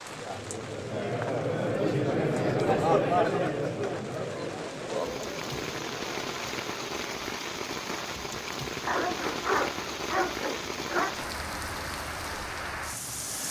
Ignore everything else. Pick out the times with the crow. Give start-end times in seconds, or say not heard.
not heard.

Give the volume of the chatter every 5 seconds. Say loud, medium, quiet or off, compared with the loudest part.
loud, quiet, off.